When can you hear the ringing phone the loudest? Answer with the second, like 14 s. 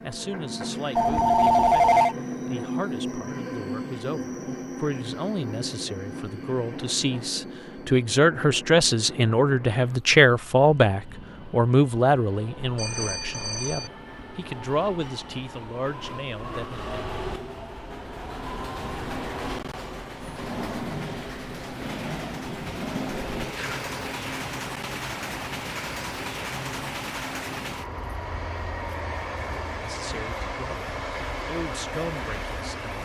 2 s.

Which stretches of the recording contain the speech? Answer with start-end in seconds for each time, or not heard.
0.0-17.1, 29.8-33.0.